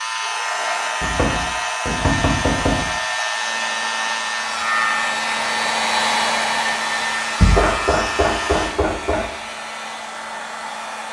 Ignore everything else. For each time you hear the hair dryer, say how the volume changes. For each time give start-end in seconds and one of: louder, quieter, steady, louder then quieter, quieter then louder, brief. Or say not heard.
0.1-11.0 louder then quieter.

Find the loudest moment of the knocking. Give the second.
8 s.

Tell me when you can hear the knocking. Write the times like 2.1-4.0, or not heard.
1.0-2.9, 7.4-9.2.